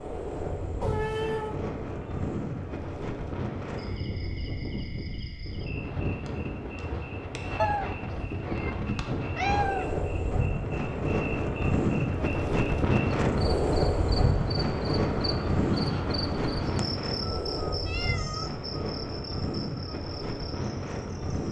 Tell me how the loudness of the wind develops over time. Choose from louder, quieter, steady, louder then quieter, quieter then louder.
louder then quieter.